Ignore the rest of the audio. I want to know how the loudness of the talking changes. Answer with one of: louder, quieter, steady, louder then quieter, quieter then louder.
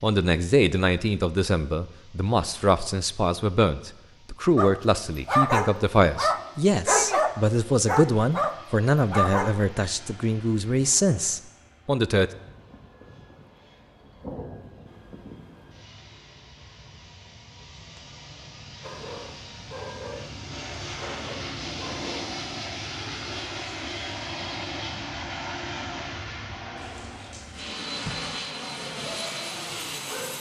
steady.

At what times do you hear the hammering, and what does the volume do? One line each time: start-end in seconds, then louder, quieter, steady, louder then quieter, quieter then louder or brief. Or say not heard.
not heard.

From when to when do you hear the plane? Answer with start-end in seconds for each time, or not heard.
0.0-30.3.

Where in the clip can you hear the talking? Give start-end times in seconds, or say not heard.
0.0-12.3.